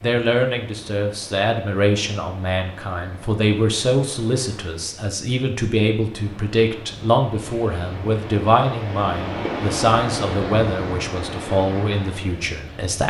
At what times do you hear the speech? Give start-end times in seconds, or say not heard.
0.0-13.0.